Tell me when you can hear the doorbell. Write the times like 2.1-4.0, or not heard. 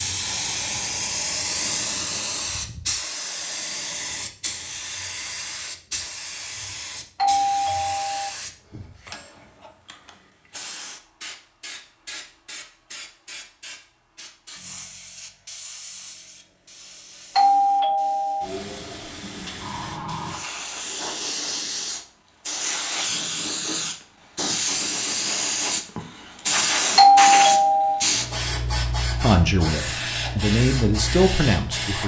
7.2-8.3, 17.4-18.4, 26.9-28.1.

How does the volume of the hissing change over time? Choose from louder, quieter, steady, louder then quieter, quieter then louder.
quieter then louder.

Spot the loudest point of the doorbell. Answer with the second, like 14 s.
27 s.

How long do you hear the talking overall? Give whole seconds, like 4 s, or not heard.
3 s.